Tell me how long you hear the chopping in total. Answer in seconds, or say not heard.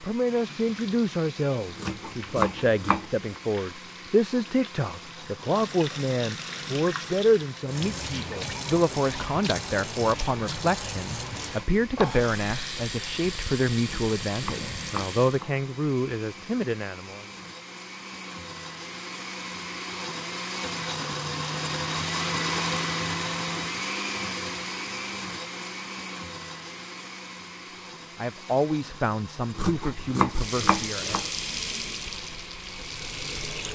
5 s.